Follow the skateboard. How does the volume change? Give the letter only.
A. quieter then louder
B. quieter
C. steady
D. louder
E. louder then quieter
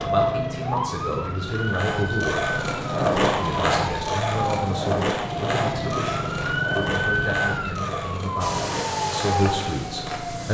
B.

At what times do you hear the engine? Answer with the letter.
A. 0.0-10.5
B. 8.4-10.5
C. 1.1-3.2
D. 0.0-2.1
B.